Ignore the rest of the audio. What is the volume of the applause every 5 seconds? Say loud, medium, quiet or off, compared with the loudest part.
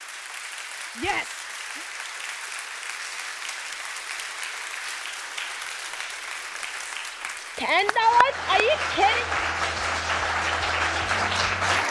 medium, medium, loud.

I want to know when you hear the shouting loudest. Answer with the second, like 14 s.
8 s.